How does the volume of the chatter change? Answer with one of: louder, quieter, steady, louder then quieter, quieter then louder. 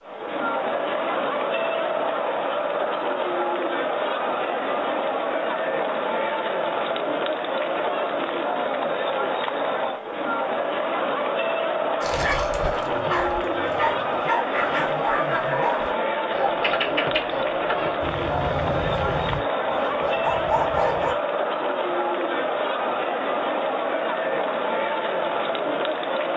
steady.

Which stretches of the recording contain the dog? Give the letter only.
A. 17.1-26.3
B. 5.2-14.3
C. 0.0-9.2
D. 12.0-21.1
D.